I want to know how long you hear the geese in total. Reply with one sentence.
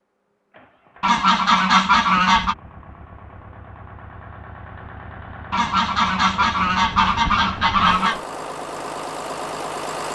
You can hear the geese for 4 seconds altogether.